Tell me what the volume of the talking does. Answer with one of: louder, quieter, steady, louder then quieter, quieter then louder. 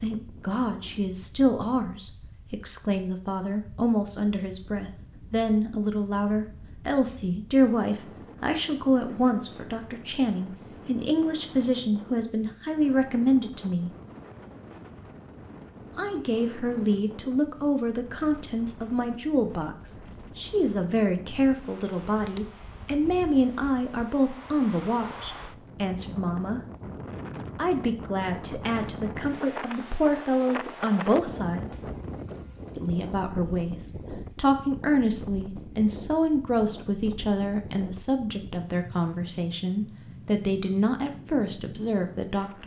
steady.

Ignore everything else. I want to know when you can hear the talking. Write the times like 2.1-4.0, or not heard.
0.0-13.9, 15.9-26.6, 27.6-31.9, 32.8-42.6.